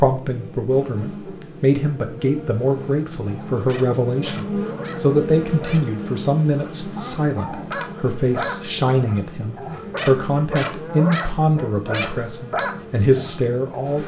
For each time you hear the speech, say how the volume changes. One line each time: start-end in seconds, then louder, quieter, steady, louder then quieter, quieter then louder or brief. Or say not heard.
0.0-14.0 steady.